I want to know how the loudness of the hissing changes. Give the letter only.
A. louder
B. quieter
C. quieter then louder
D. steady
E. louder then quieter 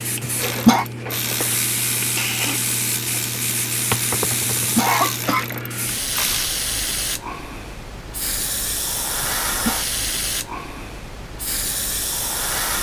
D.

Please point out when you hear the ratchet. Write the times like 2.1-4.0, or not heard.
0.4-6.5.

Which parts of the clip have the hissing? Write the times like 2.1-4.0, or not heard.
0.0-12.7.